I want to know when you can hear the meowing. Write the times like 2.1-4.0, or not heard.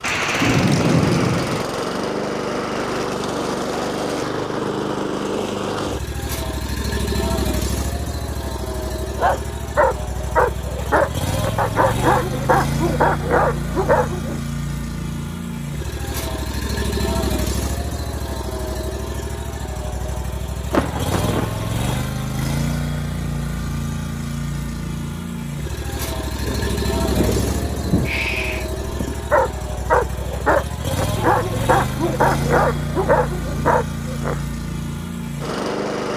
28.0-29.2.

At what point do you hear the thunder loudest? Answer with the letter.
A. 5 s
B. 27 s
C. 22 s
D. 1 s
D.